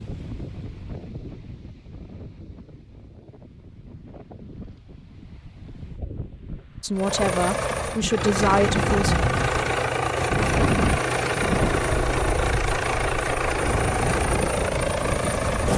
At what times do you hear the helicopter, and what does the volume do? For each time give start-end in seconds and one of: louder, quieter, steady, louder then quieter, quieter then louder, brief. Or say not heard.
7.0-15.7 steady.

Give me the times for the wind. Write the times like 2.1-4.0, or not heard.
0.0-15.7.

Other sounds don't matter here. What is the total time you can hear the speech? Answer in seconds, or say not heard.
2 s.